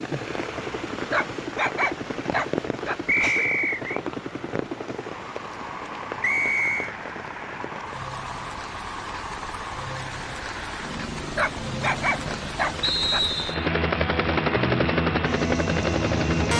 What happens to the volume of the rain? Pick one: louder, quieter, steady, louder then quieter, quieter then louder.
quieter then louder.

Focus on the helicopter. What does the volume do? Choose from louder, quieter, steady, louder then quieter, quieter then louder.
louder.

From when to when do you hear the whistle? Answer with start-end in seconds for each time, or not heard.
3.0-4.0, 6.2-6.9, 12.8-13.7.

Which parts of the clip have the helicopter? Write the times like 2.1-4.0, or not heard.
0.0-16.5.